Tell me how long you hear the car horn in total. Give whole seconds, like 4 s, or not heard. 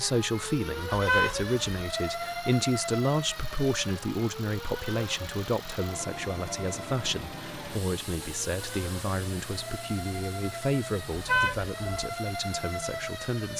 2 s.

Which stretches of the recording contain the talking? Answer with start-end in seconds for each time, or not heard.
0.0-13.5.